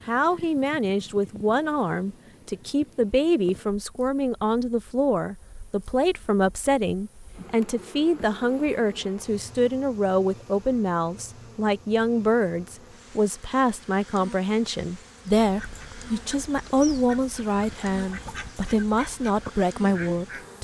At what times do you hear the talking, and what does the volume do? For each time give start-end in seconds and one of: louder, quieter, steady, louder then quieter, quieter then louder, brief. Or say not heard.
0.1-20.5 steady.